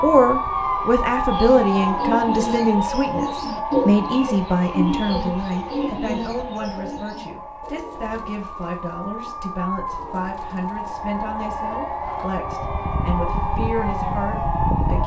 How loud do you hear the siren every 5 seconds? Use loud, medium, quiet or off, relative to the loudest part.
loud, medium, loud.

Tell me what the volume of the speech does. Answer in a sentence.
The volume of the speech goes down.